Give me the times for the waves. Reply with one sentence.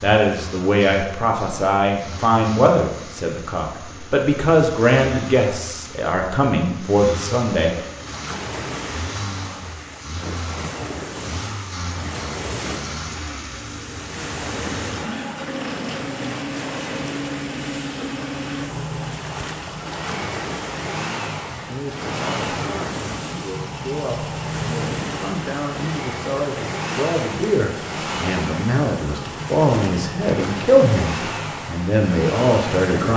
You can hear the waves from 7.8 to 33.1 s.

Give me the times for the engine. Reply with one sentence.
The engine can be heard from 0.0 to 32.9 s.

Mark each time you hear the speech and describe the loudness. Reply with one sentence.
The speech can be heard from 0.0 to 7.8 s, at a steady volume; and from 21.6 to 33.1 s, getting louder.